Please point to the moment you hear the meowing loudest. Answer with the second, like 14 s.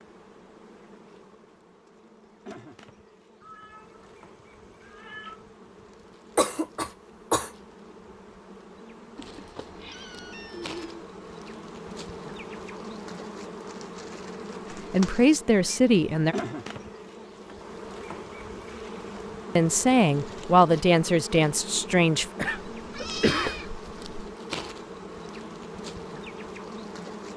23 s.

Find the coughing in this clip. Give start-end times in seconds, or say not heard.
6.3-7.5, 22.4-23.6.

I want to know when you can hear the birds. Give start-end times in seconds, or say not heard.
not heard.